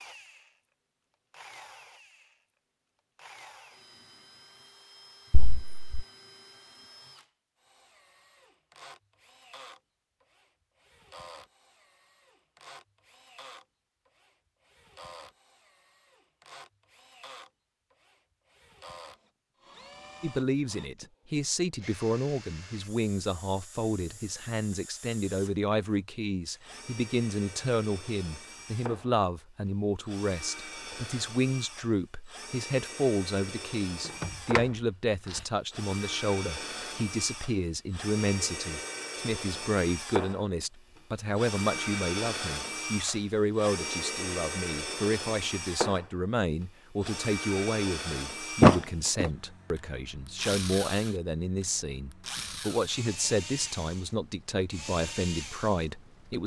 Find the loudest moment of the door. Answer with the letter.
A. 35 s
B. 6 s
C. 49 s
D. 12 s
C.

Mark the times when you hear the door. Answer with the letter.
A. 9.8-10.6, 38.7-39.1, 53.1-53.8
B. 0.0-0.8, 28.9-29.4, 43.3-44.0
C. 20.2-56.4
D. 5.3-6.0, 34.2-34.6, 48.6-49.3
D.